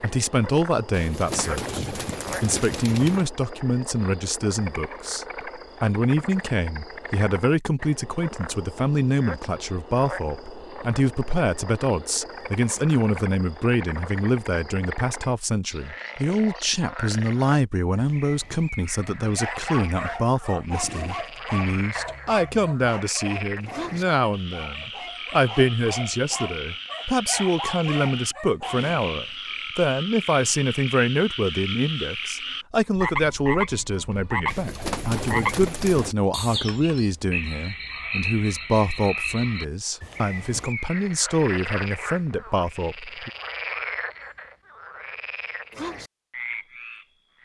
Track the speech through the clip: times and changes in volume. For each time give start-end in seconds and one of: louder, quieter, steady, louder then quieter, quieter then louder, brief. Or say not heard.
0.0-43.3 steady.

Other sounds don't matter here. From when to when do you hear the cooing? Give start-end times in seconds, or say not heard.
0.9-3.3, 34.5-36.1.